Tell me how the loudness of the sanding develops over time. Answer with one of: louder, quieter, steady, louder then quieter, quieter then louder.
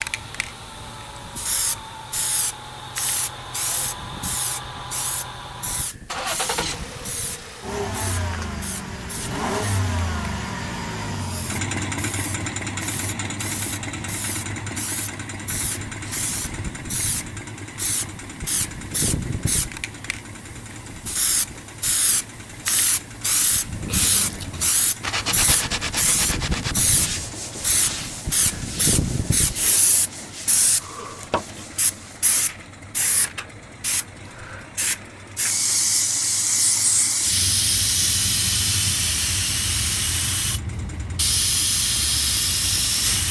quieter.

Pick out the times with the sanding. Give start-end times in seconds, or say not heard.
23.7-32.3.